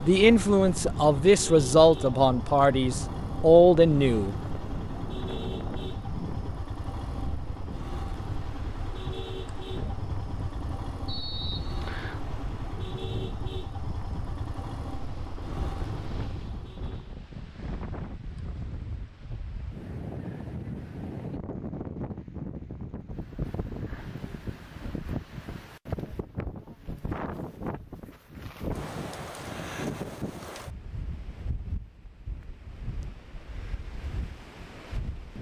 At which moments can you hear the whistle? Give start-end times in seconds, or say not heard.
11.1-12.2.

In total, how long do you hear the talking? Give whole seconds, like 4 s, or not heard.
4 s.